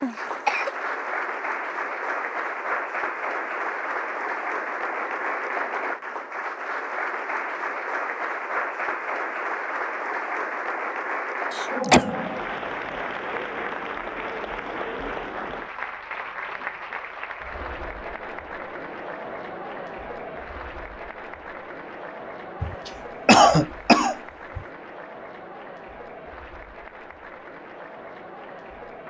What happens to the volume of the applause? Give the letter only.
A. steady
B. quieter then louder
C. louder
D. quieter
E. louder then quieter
D.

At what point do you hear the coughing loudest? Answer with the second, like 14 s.
23 s.